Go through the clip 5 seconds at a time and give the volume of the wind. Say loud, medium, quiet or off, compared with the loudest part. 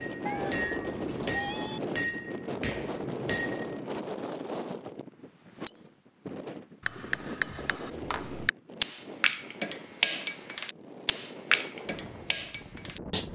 loud, medium, medium.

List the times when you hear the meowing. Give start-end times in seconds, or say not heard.
0.2-1.8.